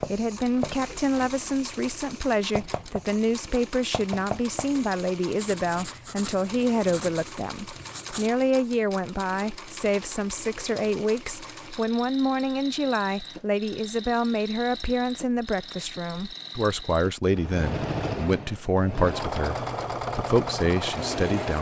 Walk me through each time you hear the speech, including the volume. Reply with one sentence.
You can hear the speech from 0.0 to 21.5 s, at a steady volume.